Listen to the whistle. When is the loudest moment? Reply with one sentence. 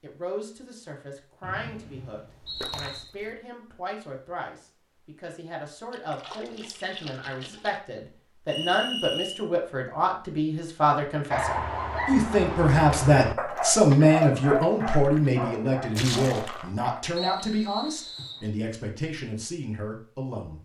The volume of the whistle peaks at 9 seconds.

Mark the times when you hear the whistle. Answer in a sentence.
The whistle can be heard from 1.4 to 3.0 s, from 8.4 to 9.4 s and from 17.1 to 18.4 s.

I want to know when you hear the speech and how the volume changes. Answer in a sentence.
The speech can be heard from 0.0 to 20.6 s, getting louder then quieter.